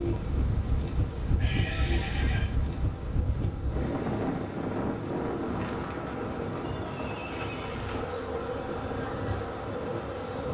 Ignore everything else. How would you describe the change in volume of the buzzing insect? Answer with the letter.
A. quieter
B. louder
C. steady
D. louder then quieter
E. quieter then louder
B.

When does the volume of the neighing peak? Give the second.
2 s.